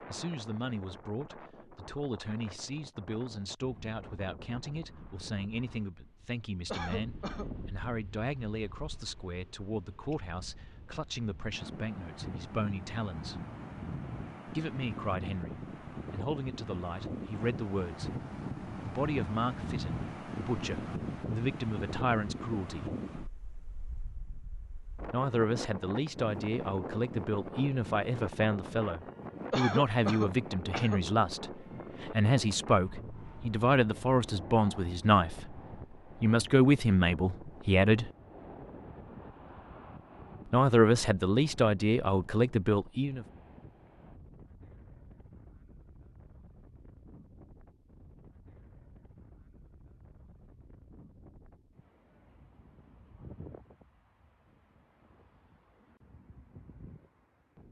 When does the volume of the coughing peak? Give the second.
30 s.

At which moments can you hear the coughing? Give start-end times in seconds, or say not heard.
6.7-7.5, 29.5-31.1.